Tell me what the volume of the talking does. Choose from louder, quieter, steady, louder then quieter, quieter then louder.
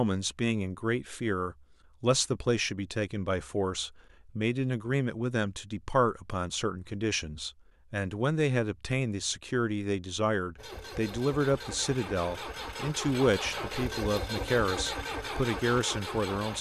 steady.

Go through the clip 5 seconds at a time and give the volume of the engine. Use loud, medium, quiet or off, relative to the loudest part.
off, off, loud, loud.